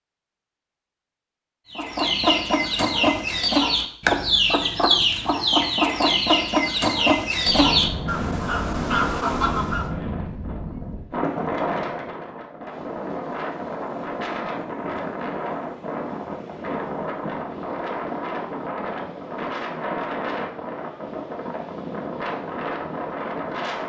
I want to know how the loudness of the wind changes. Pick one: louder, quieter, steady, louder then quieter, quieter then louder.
steady.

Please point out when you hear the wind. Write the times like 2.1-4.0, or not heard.
7.4-23.8.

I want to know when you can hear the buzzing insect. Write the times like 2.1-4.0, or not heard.
not heard.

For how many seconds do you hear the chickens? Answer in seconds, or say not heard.
8 s.